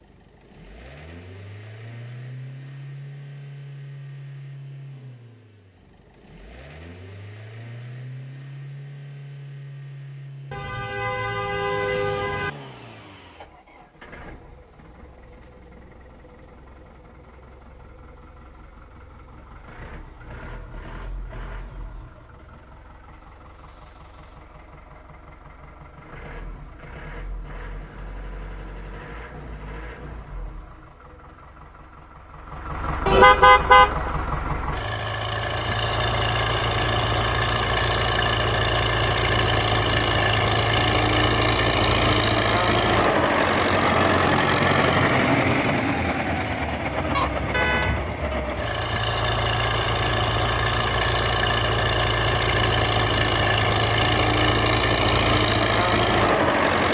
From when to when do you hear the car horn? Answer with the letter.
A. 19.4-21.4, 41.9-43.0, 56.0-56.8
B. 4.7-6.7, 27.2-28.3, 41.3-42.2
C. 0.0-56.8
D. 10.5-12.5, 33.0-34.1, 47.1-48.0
D.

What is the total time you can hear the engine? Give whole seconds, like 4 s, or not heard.
57 s.